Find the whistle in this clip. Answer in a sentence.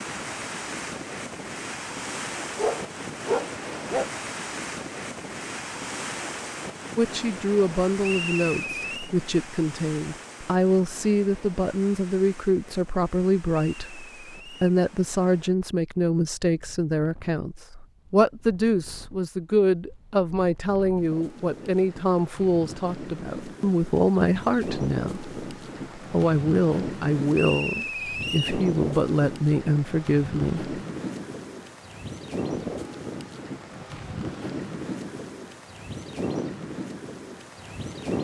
The whistle can be heard from 8.0 to 9.1 s, from 13.6 to 14.7 s and from 27.3 to 28.6 s.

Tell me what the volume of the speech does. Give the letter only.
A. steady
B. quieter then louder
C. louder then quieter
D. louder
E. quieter
A.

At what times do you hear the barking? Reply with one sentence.
You can hear the barking from 2.5 to 4.1 s.